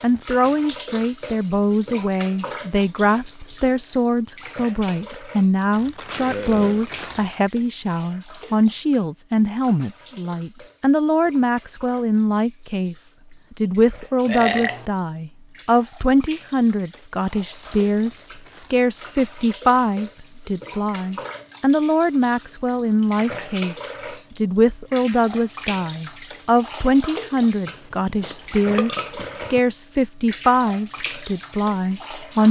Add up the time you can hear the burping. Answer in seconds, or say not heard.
3 s.